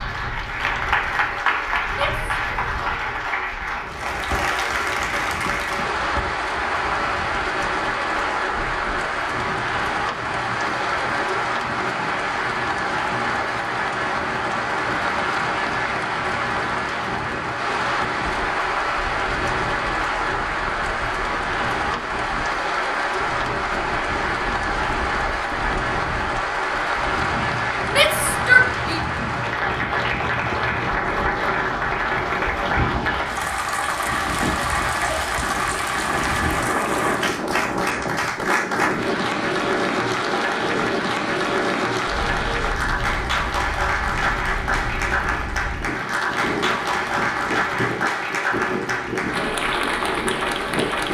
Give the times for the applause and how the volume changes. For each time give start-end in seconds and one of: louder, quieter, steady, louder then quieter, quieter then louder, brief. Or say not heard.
0.0-51.0 steady.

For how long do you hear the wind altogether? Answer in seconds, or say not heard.
51 s.